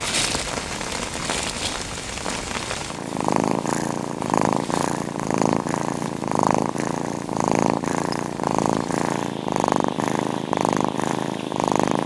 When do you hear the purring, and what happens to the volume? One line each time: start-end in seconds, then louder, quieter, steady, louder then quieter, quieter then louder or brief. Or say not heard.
0.2-12.0 louder.